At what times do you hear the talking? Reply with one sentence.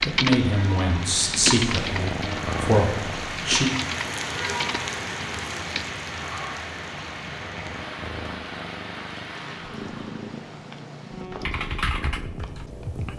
You can hear the talking from 0.1 to 3.7 s.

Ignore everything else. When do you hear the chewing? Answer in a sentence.
The chewing can't be heard in this clip.